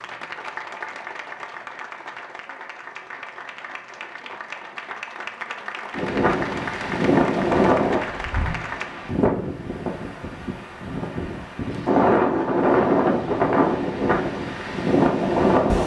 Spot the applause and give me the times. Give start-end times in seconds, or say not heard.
0.0-8.9.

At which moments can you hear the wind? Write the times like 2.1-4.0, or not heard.
6.0-15.8.